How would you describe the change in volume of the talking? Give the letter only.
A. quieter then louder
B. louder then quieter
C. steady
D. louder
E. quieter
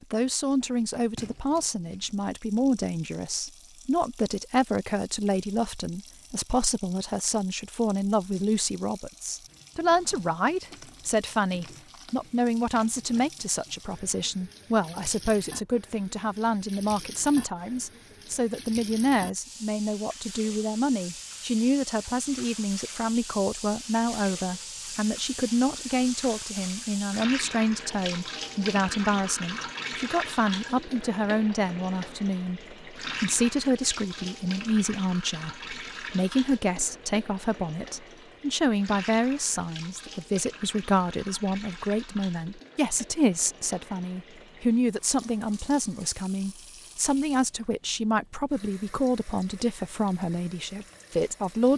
C.